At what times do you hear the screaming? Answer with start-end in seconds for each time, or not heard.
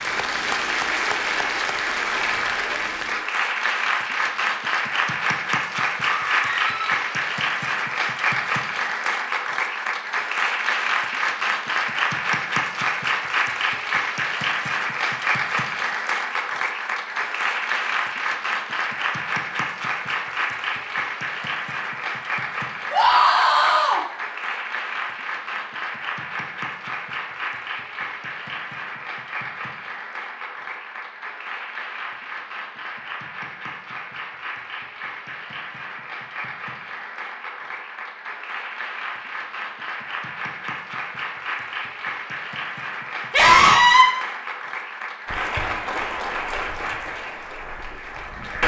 6.0-6.9, 22.9-24.0, 43.3-44.0.